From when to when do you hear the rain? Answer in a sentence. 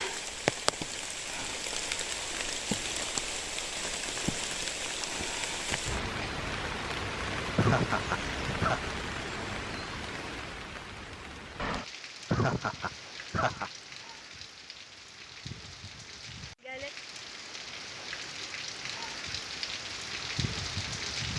The rain can be heard from 0.0 to 21.3 s.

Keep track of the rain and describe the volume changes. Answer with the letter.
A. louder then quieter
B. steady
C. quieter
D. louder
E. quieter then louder
E.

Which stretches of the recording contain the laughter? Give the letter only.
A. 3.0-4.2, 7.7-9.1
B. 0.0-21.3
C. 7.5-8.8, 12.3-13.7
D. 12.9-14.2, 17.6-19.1
C.